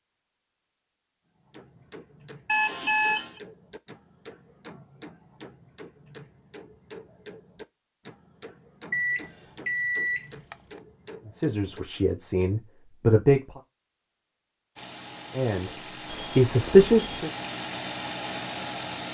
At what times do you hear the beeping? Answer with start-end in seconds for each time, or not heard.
2.5-3.3, 8.9-10.6, 16.1-17.3.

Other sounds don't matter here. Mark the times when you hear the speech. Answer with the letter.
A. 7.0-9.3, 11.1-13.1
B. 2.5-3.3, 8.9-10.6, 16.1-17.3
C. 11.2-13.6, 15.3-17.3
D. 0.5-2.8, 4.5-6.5
C.